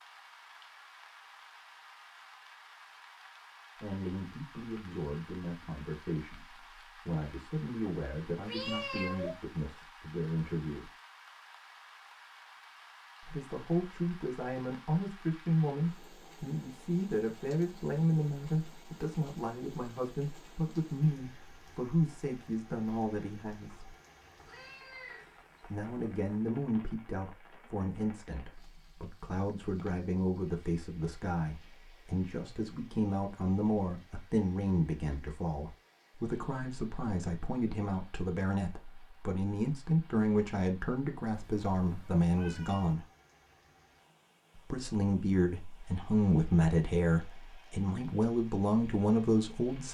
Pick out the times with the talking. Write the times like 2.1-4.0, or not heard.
3.8-10.9, 13.2-23.9, 25.7-43.0, 44.7-49.8.